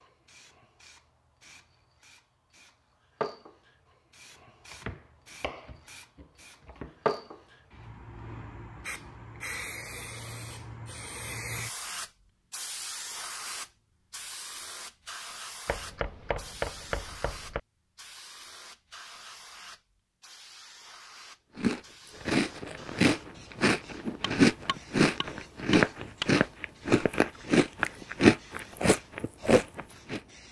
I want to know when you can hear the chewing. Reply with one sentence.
The chewing can be heard from 21.6 to 30.2 s.